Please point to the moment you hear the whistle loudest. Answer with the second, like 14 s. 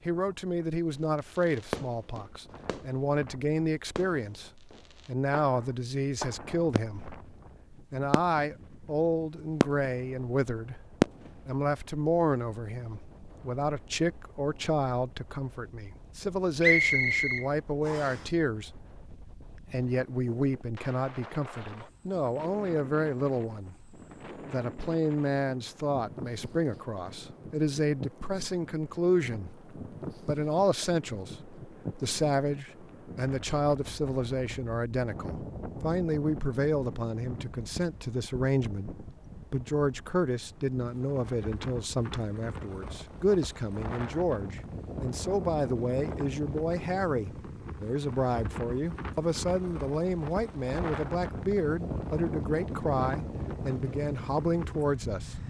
17 s.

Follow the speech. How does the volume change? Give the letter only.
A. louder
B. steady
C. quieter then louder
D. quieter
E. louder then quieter
B.